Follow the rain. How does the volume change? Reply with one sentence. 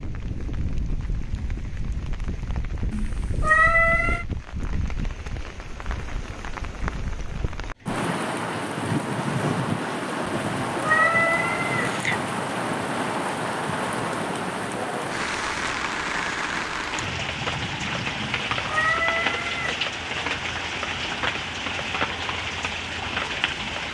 The volume of the rain goes up.